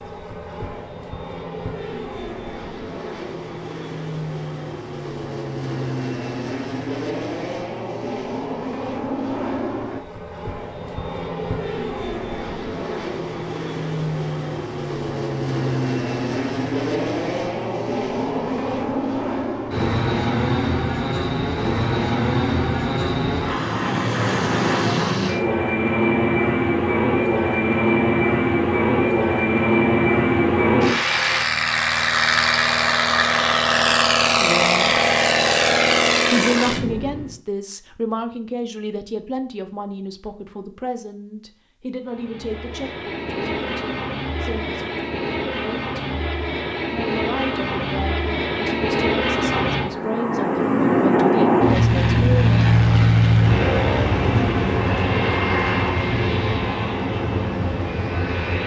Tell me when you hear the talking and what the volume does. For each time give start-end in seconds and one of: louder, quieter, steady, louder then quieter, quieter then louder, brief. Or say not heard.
34.4-35.0 brief
36.3-46.0 quieter
46.9-52.7 steady.